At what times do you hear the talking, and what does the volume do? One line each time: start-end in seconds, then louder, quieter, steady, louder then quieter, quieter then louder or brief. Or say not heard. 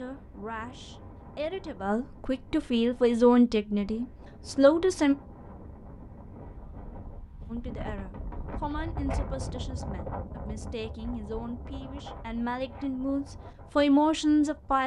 0.0-5.2 louder
7.5-14.8 quieter then louder.